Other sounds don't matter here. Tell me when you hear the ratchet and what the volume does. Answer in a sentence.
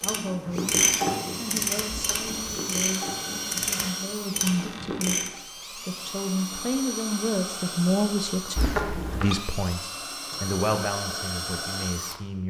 You can hear the ratchet from 0.0 to 5.3 s, getting quieter.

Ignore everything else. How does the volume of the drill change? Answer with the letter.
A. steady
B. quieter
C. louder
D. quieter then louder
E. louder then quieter
A.